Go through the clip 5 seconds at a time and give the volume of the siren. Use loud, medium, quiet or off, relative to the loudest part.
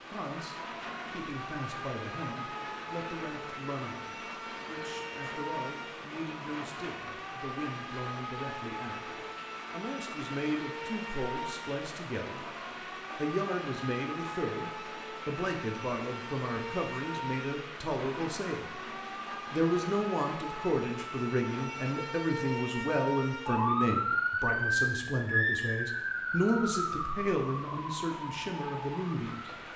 medium, medium, medium, medium, loud, loud.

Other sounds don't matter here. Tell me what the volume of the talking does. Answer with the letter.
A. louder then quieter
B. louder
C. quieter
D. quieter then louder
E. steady
B.